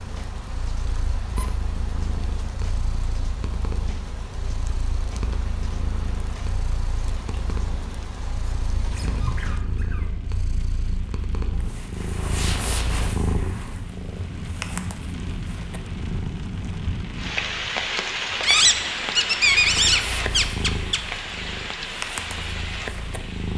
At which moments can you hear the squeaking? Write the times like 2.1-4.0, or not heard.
8.3-10.1, 18.4-21.0.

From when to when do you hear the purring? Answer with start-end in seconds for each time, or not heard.
0.0-23.5.